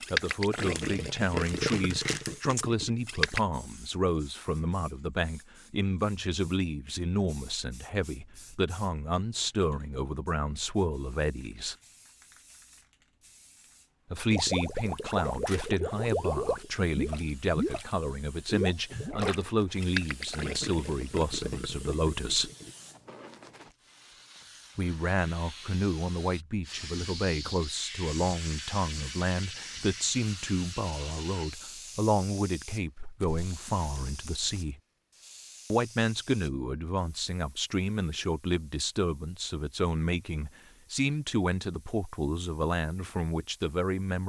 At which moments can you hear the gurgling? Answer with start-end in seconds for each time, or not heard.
0.0-3.4, 14.3-17.9, 18.4-22.8.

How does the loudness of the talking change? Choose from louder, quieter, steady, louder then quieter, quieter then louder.
steady.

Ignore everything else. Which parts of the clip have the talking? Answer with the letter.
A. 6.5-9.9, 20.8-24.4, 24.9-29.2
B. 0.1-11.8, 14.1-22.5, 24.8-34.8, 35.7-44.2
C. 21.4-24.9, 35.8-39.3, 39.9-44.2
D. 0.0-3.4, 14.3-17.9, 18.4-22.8
B.